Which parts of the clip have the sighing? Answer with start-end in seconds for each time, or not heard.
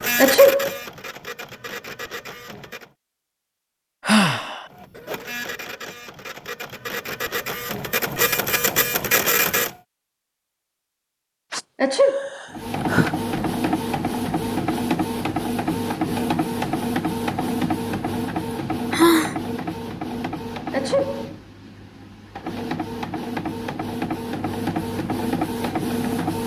4.0-4.7, 11.5-13.2, 18.4-19.4.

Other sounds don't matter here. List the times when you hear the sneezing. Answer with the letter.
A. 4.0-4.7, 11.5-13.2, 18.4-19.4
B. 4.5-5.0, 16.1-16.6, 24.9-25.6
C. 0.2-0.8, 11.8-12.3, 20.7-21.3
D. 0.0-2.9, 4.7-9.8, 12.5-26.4
C.